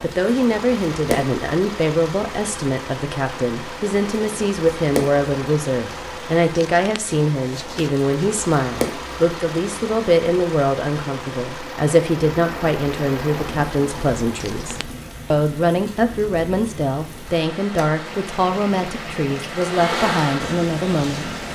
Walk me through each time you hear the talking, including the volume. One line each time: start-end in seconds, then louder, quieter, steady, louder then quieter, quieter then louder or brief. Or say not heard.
0.0-21.4 steady.